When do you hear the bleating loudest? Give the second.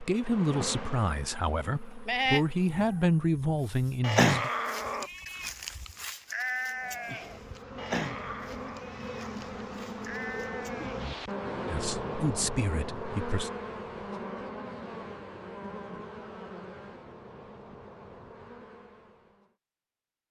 4 s.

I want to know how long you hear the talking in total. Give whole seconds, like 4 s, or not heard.
6 s.